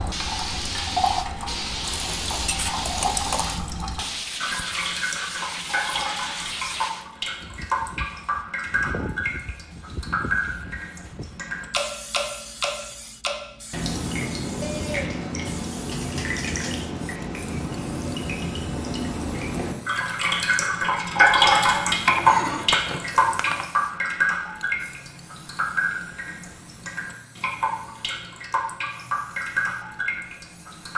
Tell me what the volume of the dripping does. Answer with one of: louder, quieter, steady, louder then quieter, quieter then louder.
louder then quieter.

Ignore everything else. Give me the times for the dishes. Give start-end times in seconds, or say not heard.
1.8-3.6, 14.6-16.9, 22.1-23.6.